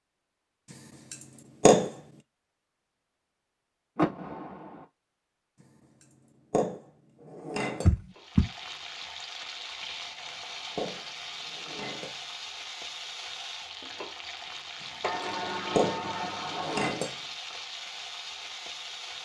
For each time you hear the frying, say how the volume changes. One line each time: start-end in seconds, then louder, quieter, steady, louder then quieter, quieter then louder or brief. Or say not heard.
8.1-19.2 steady.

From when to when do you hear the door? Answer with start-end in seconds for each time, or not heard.
4.0-4.8, 7.8-8.5, 15.0-16.9.